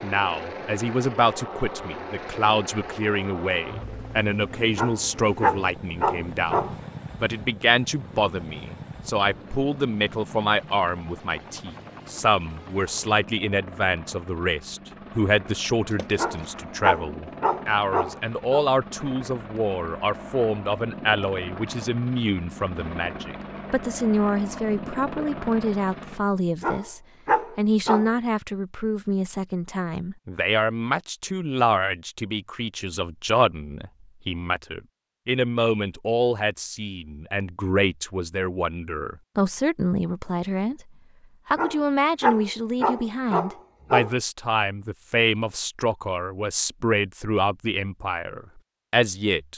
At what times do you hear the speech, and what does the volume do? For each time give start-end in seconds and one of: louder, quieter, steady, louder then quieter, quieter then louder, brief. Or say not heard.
0.0-40.9 steady
41.5-49.5 steady.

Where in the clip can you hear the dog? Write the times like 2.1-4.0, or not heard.
4.8-6.8, 16.1-18.6, 26.6-28.1, 41.5-44.1.